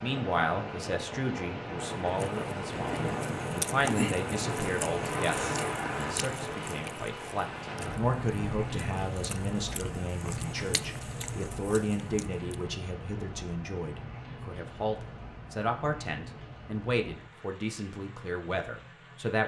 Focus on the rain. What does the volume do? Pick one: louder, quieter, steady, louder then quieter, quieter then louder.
quieter.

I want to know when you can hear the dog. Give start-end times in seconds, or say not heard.
not heard.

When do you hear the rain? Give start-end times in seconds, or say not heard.
0.0-19.4.